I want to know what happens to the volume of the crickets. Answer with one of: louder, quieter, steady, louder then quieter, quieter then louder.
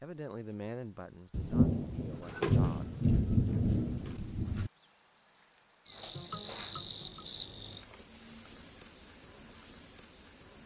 louder.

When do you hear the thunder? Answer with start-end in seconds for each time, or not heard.
1.3-4.7.